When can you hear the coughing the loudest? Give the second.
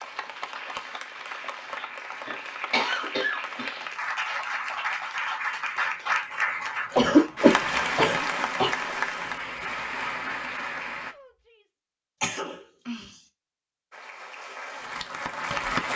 7 s.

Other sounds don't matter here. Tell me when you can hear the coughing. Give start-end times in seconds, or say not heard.
1.8-3.8, 7.0-8.7, 12.2-13.2.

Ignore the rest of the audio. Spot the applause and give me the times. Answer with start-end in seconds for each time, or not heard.
0.0-11.2, 13.9-15.9.